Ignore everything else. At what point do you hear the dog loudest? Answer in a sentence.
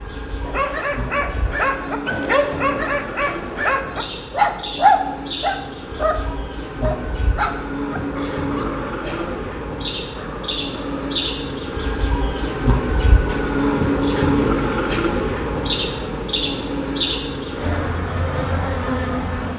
The loudest moment of the dog is at 5 seconds.